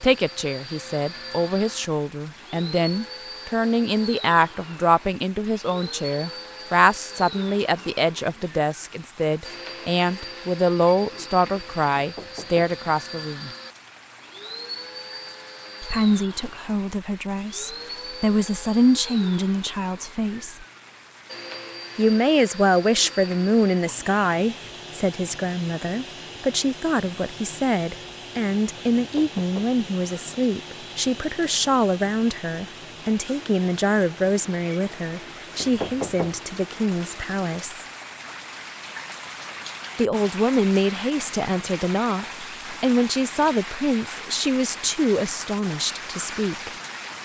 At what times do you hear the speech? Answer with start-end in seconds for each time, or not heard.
0.0-13.5, 15.8-20.6, 21.9-37.9, 40.0-46.7.